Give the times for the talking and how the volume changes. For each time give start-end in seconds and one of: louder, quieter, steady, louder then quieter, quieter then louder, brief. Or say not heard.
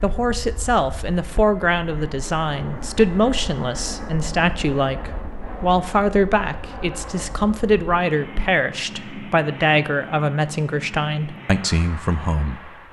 0.0-12.7 steady.